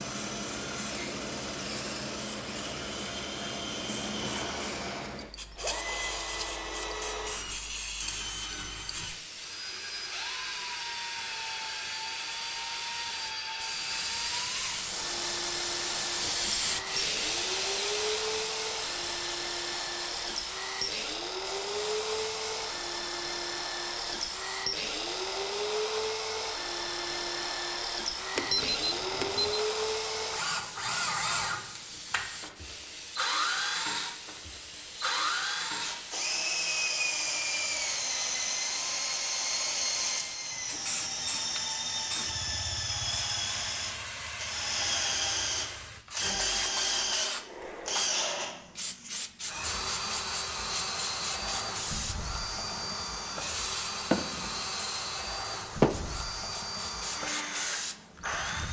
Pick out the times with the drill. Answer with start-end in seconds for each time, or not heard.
0.0-58.6.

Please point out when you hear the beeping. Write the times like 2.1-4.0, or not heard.
28.4-29.6.